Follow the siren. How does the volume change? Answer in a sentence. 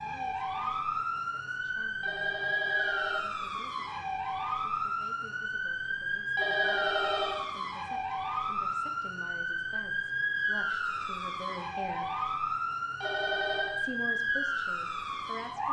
The volume of the siren stays about the same.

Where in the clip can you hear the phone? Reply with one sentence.
You can hear the phone from 2.0 to 3.3 s, from 6.3 to 7.5 s and from 13.0 to 13.8 s.